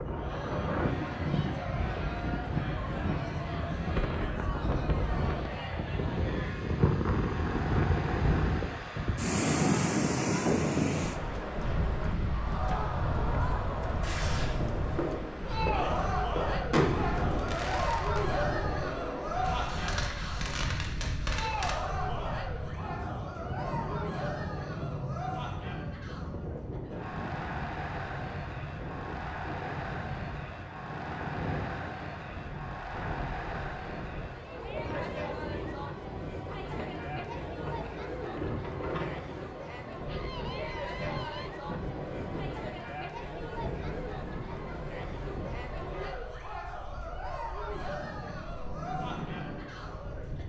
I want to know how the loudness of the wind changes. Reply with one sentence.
The volume of the wind goes down.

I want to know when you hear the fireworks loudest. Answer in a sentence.
The loudest moment of the fireworks is at 17 seconds.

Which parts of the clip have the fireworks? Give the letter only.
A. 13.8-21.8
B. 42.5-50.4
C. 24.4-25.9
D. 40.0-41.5
A.